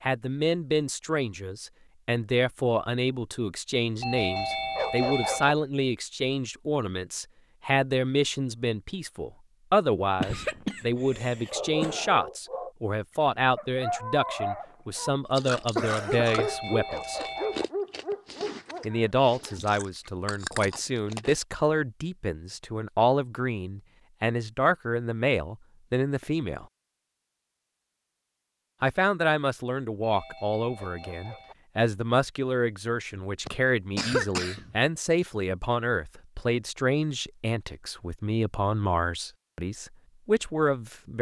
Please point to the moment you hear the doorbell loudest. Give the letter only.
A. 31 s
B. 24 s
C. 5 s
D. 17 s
C.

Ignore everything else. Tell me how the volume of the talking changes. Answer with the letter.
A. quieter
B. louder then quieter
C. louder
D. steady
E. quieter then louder
D.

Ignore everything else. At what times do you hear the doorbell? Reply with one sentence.
The doorbell can be heard from 4.0 to 5.5 s, from 16.2 to 17.6 s and from 30.0 to 31.6 s.